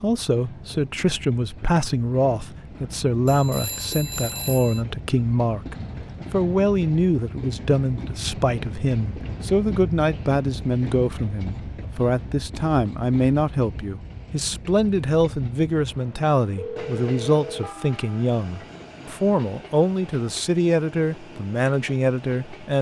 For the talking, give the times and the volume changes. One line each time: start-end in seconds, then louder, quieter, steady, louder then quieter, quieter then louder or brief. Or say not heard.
0.0-22.7 steady.